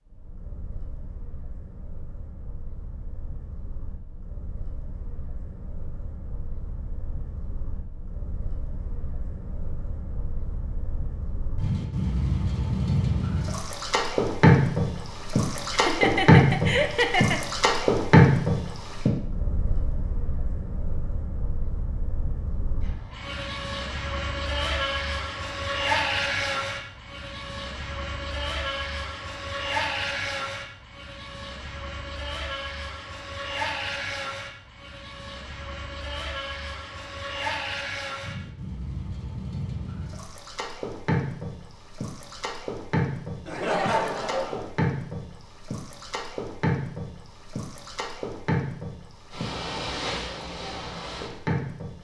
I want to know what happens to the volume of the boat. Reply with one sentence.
The loudness of the boat goes up, then down.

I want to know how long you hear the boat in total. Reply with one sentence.
The boat can be heard for 52 seconds in total.